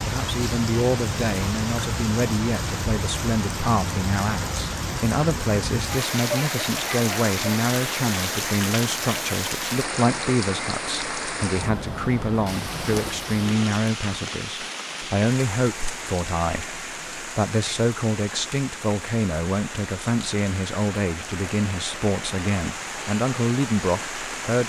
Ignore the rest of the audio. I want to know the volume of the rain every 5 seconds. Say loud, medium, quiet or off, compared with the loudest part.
loud, loud, loud, medium, medium.